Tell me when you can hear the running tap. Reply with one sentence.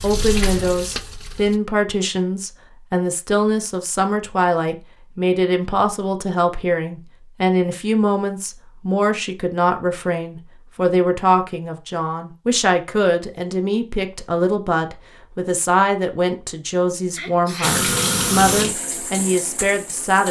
The running tap can be heard from 0.0 to 1.6 s and from 17.6 to 20.2 s.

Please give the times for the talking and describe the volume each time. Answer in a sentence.
The talking can be heard from 0.0 to 20.2 s, at a steady volume.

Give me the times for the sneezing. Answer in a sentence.
You can hear the sneezing from 17.1 to 17.8 s.